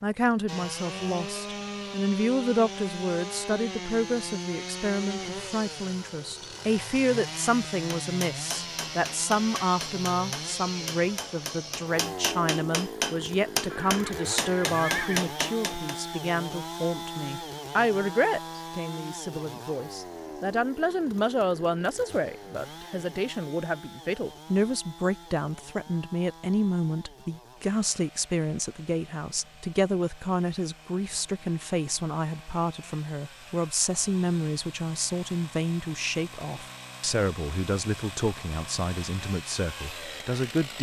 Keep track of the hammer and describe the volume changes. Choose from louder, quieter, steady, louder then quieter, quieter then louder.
louder.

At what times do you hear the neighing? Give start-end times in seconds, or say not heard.
13.7-15.2.